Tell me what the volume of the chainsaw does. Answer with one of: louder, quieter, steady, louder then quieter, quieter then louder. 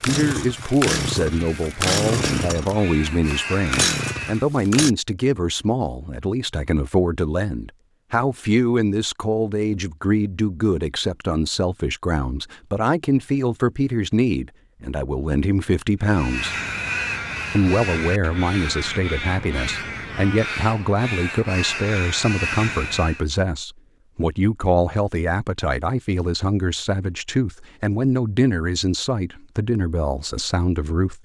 quieter then louder.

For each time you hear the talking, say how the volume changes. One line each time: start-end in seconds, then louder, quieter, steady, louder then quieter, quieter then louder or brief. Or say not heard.
0.0-16.6 steady
17.6-31.1 steady.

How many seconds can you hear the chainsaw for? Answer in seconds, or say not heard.
5 s.